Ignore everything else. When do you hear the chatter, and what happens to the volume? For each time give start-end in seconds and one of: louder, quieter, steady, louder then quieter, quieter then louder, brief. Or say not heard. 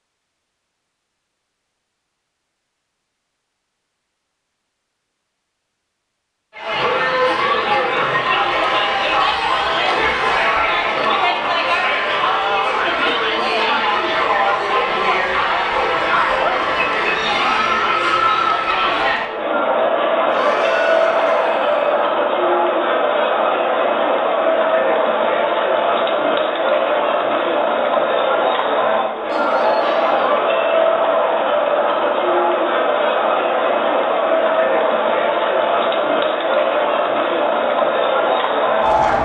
6.5-39.1 steady.